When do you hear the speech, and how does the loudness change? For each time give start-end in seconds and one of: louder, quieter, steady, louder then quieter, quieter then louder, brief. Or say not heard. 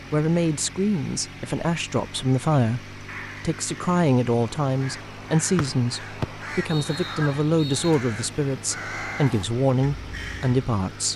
0.1-11.1 steady.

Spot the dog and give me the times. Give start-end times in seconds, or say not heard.
not heard.